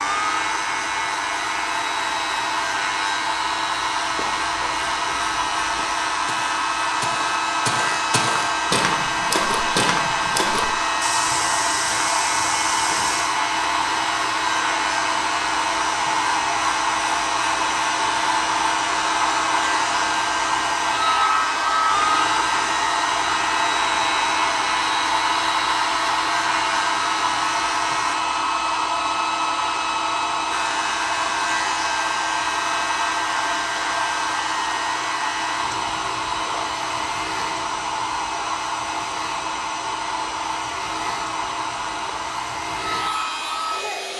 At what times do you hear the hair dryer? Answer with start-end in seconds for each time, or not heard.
0.0-44.1.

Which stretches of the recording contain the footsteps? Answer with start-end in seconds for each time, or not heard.
4.0-13.3.